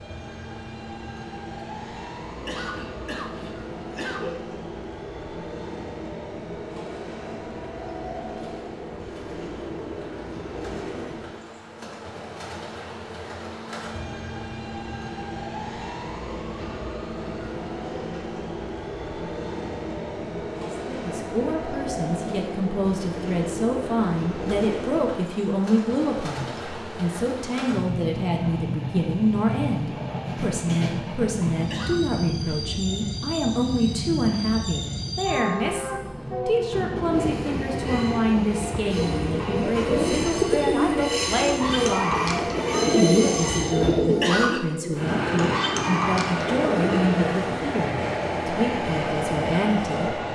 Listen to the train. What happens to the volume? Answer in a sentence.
The volume of the train goes up.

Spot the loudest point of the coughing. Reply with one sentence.
The volume of the coughing peaks at 44 seconds.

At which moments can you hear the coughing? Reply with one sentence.
The coughing can be heard from 2.2 to 4.3 s, from 31.5 to 32.0 s and from 44.0 to 44.6 s.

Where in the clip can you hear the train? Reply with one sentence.
The train can be heard from 0.0 to 50.3 s.